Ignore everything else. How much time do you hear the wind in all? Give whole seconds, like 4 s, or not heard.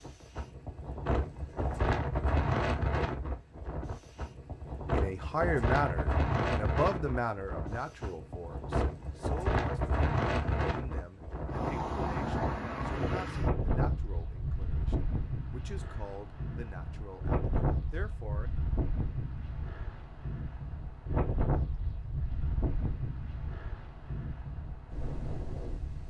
26 s.